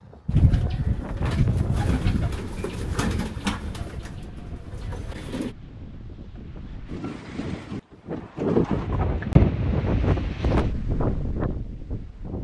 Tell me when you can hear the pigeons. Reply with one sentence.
The pigeons can be heard from 0.2 to 5.5 s.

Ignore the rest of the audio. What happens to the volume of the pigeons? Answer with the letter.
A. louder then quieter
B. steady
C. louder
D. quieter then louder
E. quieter
E.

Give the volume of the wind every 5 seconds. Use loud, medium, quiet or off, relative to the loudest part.
quiet, loud, loud.